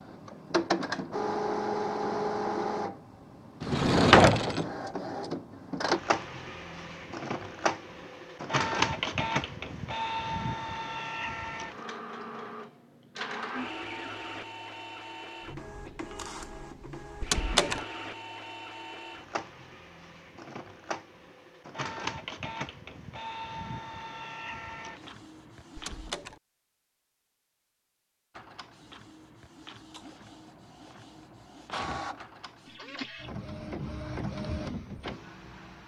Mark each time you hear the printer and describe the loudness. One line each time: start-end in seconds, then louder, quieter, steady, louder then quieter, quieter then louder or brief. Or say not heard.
0.0-26.1 quieter
28.4-35.8 louder.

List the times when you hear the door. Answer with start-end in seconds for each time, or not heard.
3.6-4.7, 17.2-17.8, 25.8-26.4.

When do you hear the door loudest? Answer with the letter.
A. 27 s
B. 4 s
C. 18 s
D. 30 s
B.